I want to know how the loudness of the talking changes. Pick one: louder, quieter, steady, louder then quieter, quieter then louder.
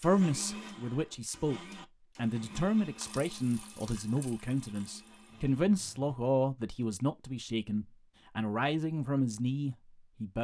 steady.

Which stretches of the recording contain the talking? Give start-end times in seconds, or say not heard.
0.0-10.3.